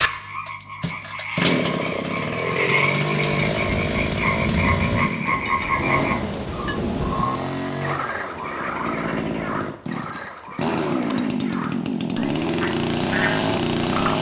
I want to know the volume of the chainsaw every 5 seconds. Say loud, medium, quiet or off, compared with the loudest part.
loud, medium, loud.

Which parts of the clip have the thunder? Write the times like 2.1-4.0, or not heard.
3.4-7.2.